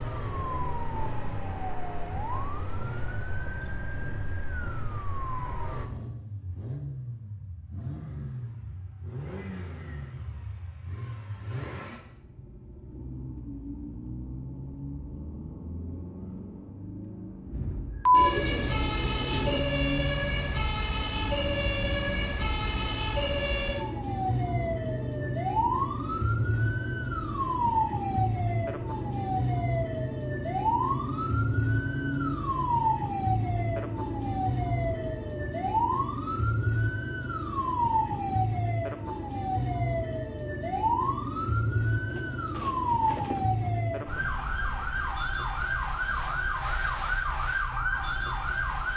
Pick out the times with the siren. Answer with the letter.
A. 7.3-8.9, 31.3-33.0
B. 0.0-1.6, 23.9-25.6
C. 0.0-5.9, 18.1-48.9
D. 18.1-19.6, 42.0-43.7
C.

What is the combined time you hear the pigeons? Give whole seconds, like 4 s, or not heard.
3 s.